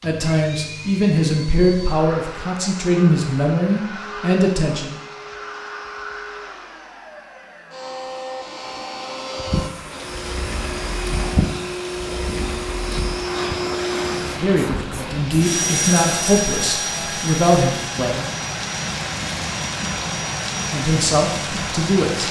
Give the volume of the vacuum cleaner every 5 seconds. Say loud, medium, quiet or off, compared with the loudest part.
medium, medium, loud, loud, off.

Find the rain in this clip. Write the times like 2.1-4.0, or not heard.
9.5-22.2.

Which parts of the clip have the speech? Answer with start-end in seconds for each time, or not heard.
0.0-5.0, 14.2-18.3, 20.7-22.2.